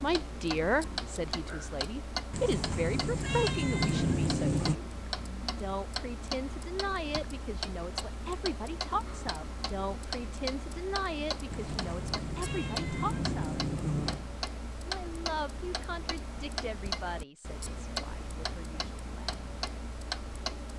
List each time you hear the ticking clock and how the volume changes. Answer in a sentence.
The ticking clock can be heard from 0.0 to 20.7 s, at a steady volume.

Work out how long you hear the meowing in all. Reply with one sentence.
You can hear the meowing for 5 seconds altogether.